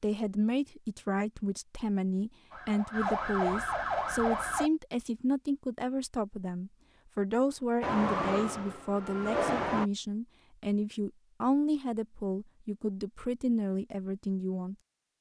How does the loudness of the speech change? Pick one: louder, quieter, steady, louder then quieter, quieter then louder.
steady.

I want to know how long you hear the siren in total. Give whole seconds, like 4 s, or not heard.
4 s.